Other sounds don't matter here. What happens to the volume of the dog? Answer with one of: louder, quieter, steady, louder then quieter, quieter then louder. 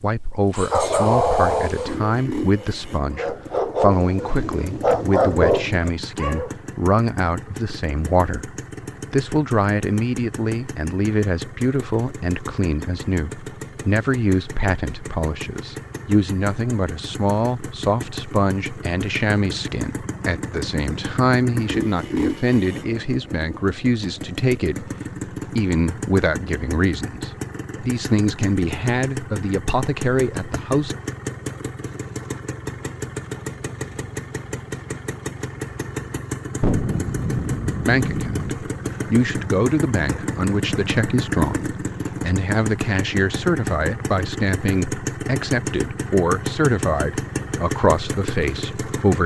quieter then louder.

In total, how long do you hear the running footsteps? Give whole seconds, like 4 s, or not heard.
not heard.